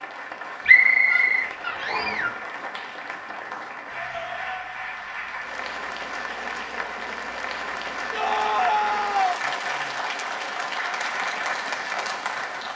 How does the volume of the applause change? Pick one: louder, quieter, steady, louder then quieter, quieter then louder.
louder.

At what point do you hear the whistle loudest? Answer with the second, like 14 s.
1 s.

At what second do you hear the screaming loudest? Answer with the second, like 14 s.
9 s.